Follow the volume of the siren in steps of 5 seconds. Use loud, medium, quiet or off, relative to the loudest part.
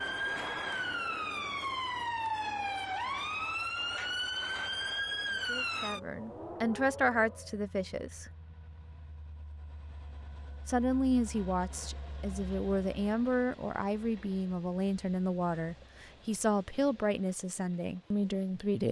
loud, loud, off, off.